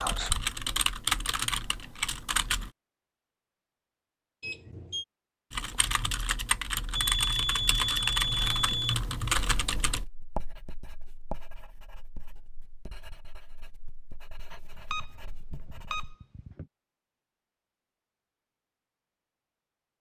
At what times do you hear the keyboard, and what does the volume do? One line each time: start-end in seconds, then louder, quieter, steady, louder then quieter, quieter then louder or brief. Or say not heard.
0.0-2.7 brief
5.5-10.1 steady.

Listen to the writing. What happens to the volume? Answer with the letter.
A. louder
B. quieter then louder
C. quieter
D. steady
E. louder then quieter
C.